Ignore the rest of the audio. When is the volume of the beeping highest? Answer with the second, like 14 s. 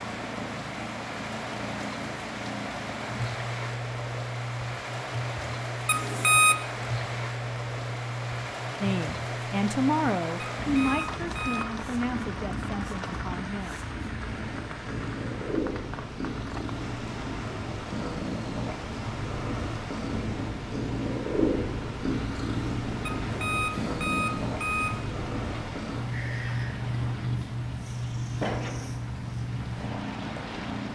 6 s.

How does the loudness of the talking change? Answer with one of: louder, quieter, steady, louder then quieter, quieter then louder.
quieter.